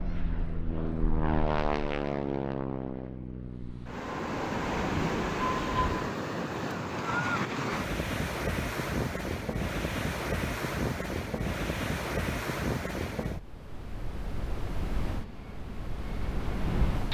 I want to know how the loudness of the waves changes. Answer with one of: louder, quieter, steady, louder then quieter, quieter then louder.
quieter.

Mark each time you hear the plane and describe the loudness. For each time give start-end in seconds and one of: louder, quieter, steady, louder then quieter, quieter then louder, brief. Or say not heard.
0.0-6.1 quieter then louder
15.1-17.0 brief.